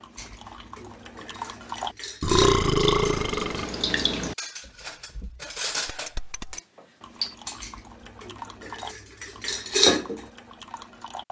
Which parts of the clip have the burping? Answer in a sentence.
The burping can be heard from 2.2 to 3.6 s.